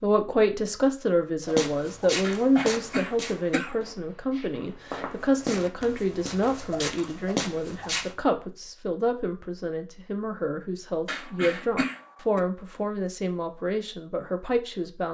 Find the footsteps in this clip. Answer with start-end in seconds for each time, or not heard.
1.4-8.1.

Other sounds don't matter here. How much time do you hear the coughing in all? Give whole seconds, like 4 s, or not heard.
3 s.